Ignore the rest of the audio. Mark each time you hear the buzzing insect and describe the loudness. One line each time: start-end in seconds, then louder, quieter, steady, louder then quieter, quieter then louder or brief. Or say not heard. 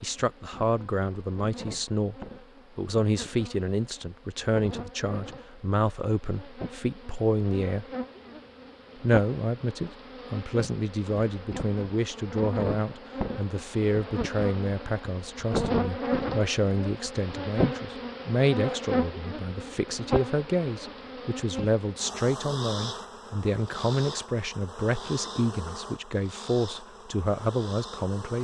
0.0-28.3 louder then quieter.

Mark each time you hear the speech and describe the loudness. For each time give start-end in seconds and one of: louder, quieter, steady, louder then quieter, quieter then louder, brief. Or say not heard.
0.0-7.8 steady
9.0-28.3 steady.